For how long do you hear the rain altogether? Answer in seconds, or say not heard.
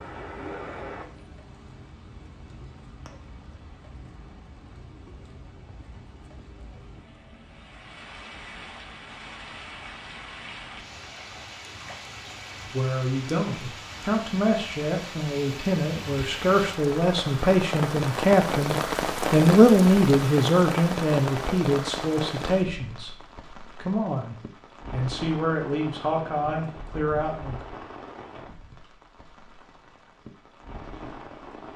32 s.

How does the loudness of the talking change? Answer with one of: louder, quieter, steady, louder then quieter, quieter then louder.
louder then quieter.